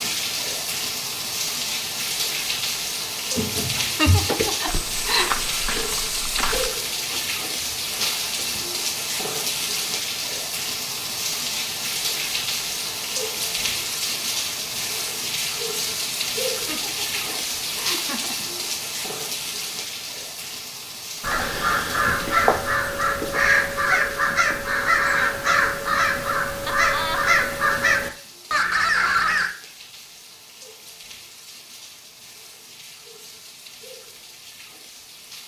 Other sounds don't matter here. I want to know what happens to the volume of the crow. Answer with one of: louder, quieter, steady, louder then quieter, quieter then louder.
steady.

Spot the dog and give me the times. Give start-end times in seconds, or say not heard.
not heard.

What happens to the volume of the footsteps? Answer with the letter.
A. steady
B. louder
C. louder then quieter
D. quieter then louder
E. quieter
E.